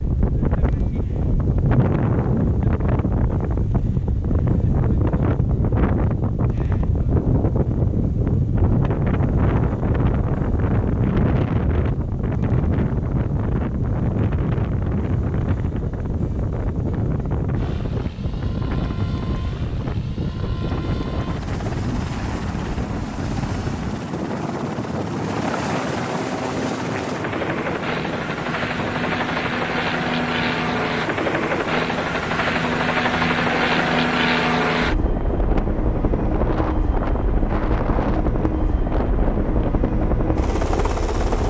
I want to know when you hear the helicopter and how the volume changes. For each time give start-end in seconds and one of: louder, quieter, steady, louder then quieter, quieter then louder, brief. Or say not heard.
0.0-41.4 louder.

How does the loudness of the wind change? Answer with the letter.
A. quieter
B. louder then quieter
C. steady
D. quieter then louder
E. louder
A.